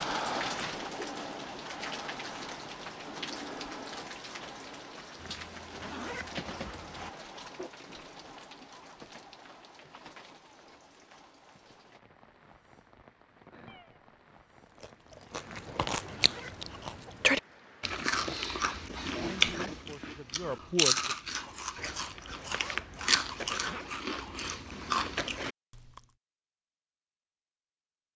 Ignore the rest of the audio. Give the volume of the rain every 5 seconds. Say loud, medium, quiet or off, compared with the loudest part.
loud, medium, quiet, quiet, off, off.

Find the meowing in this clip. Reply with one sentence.
The meowing can be heard from 13.7 to 14.2 s.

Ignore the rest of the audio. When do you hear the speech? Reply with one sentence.
You can hear the speech from 19.3 to 21.1 s.